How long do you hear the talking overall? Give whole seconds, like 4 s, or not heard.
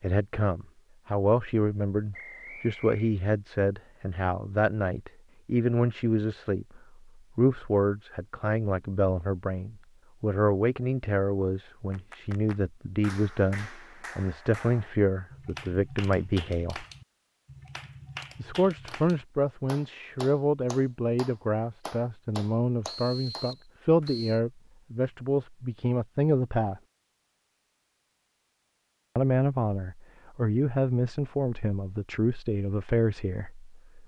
30 s.